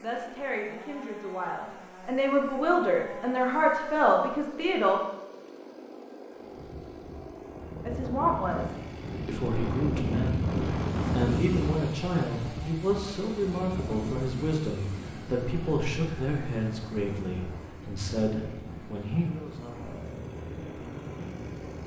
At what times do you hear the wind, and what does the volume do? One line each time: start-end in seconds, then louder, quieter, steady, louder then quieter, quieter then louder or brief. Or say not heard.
6.3-21.8 louder then quieter.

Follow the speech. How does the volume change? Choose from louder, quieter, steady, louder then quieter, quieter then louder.
quieter.